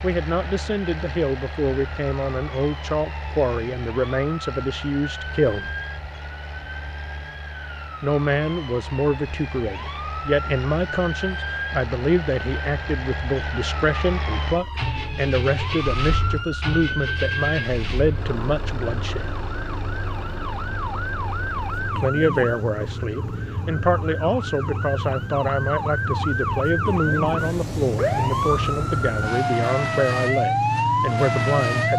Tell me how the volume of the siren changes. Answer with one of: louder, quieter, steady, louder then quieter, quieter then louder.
louder.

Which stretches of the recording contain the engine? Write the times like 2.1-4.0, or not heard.
0.0-31.9.